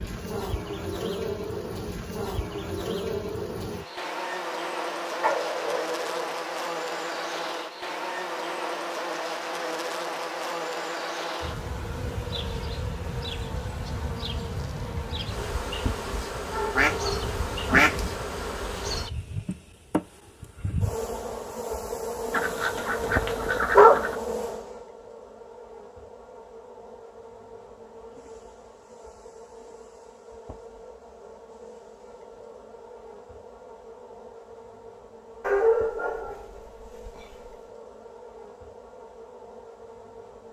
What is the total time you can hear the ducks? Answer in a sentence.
You can hear the ducks for 3 seconds altogether.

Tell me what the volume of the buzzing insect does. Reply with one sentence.
The loudness of the buzzing insect goes down.